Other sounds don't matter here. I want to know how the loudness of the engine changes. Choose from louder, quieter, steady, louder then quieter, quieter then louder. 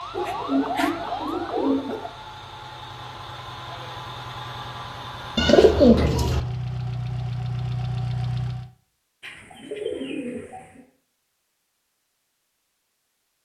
louder.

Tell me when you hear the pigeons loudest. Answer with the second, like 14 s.
6 s.